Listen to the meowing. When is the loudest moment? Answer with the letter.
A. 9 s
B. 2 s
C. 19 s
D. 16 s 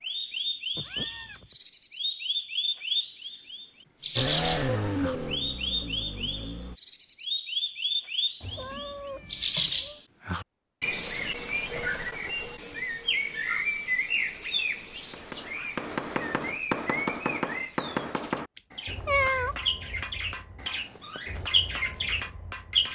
C.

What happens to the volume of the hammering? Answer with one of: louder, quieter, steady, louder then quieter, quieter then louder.
quieter.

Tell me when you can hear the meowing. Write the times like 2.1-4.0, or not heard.
0.8-1.6, 8.4-10.0, 18.6-19.6.